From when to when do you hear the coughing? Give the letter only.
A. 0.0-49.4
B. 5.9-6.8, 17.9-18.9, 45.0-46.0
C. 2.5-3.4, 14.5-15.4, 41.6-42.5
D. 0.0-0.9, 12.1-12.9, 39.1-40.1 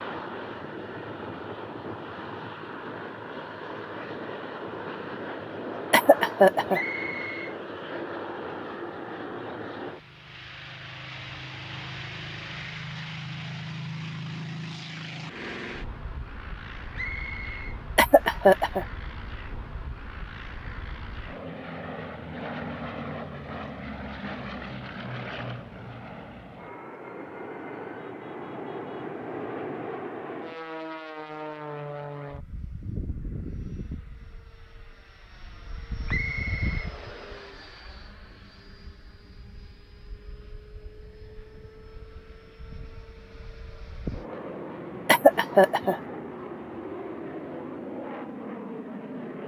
B.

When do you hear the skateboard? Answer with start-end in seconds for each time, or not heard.
not heard.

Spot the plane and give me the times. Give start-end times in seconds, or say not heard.
0.0-49.4.